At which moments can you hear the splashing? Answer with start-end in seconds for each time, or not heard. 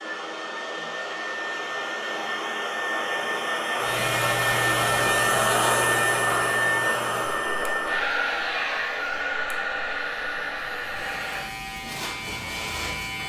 not heard.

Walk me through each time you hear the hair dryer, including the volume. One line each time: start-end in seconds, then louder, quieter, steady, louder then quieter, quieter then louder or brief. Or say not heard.
0.0-11.4 louder then quieter.